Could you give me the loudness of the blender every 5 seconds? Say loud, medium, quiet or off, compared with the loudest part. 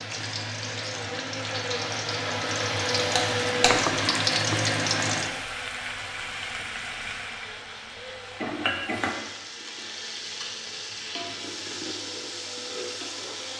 loud, medium, medium.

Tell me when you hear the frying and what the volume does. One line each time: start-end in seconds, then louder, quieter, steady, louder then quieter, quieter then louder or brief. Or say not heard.
0.0-13.5 louder then quieter.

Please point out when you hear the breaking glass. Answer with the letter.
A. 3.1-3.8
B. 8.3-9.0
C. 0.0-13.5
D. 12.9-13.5
A.